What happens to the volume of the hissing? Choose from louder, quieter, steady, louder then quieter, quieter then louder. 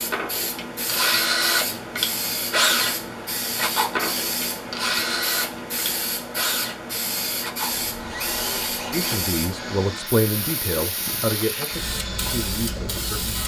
steady.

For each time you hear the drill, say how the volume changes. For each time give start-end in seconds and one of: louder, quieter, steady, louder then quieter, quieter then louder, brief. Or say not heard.
0.0-13.4 quieter.